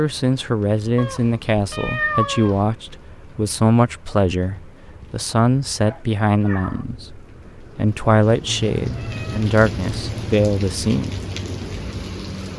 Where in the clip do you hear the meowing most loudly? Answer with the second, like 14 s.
2 s.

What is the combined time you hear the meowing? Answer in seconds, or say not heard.
5 s.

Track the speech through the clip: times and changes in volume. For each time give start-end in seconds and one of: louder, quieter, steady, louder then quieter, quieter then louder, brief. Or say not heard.
0.0-11.2 steady.